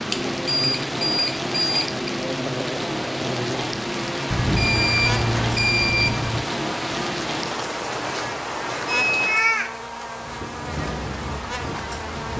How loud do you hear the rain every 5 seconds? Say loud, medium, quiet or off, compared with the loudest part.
loud, loud, medium.